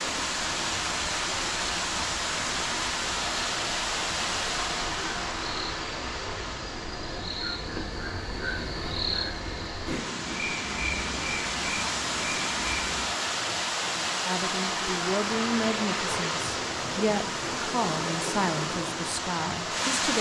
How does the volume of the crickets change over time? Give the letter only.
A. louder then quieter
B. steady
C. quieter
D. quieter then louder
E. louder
E.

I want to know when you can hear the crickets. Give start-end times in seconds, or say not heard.
0.0-13.1.